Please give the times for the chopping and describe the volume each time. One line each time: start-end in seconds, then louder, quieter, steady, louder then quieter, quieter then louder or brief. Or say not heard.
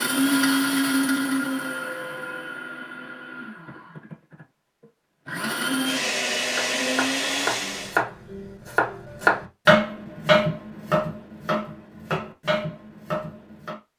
6.5-13.8 louder then quieter.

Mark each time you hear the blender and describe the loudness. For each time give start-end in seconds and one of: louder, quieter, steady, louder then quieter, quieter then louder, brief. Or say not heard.
0.0-8.0 quieter then louder.